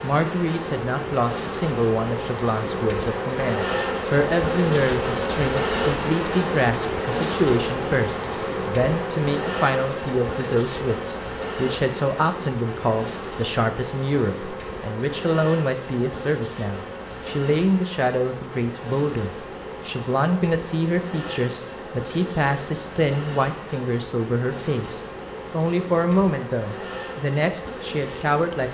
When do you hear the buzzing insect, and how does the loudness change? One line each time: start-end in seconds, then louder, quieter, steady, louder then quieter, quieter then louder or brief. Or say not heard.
0.0-28.6 quieter.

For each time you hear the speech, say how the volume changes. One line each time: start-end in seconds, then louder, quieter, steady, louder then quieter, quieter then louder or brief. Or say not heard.
0.0-28.6 steady.